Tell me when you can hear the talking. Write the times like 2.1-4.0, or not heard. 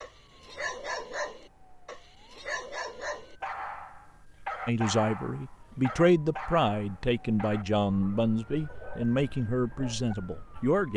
4.7-10.9.